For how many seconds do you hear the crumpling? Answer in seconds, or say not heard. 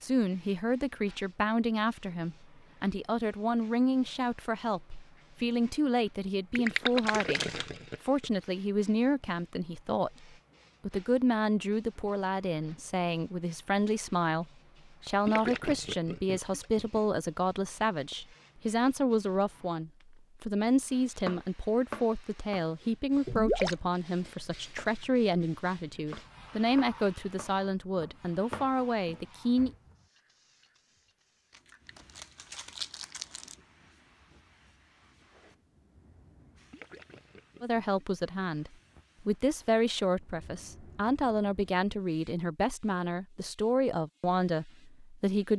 3 s.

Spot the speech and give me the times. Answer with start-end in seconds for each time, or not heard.
0.0-10.1, 10.8-29.7, 37.6-45.5.